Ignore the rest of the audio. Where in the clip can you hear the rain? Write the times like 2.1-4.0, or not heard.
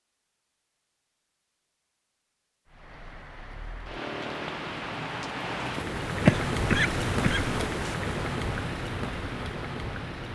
2.6-10.3.